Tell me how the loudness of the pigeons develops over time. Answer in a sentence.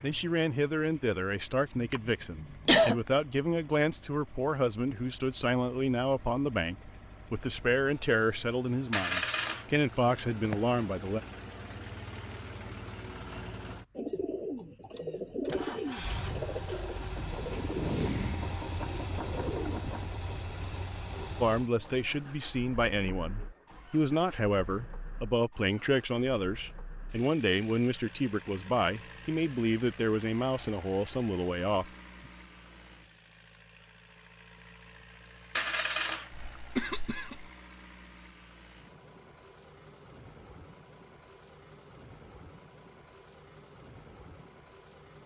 The volume of the pigeons goes down.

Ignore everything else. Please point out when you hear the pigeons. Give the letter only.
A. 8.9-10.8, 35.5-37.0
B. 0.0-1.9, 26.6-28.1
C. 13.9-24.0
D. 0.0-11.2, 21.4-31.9
C.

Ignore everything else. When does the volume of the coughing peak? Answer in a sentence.
The volume of the coughing peaks at 3 seconds.